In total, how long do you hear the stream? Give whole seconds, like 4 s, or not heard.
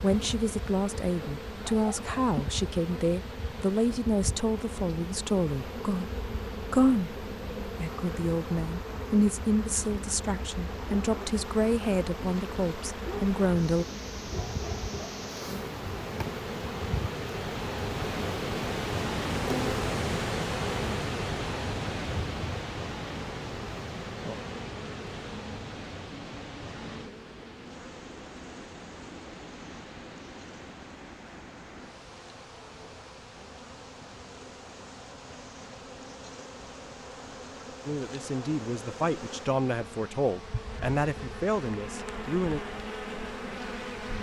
44 s.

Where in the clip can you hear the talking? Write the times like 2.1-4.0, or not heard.
0.0-13.8, 37.9-42.6.